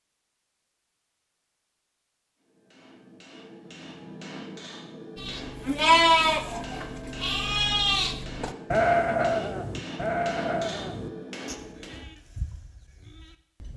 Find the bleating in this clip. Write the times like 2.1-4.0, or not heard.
5.2-13.7.